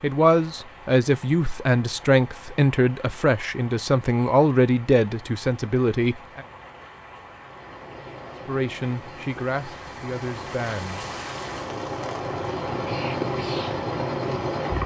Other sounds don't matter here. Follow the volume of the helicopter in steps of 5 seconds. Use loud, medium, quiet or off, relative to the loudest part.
off, quiet, loud.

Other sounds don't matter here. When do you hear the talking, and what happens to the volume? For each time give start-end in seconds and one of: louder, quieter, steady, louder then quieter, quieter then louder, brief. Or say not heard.
0.0-6.5 steady
8.4-11.1 brief.